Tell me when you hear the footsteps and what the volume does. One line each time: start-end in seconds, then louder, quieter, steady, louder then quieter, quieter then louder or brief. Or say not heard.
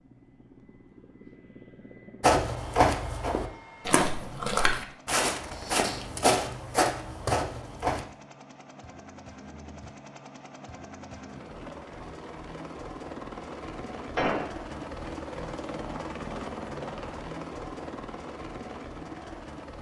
2.2-8.1 steady.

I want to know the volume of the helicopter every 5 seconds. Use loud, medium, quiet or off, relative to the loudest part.
quiet, medium, loud, loud.